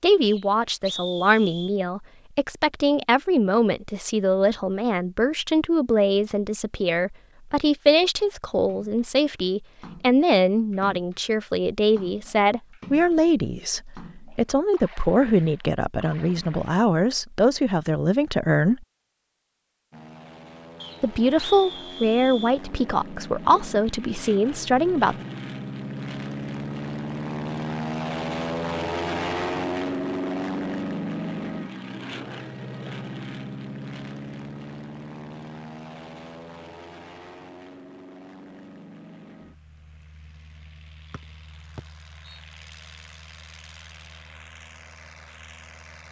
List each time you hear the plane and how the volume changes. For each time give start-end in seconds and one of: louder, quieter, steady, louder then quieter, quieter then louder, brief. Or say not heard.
19.9-46.0 louder then quieter.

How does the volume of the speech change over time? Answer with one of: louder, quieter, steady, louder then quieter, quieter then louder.
steady.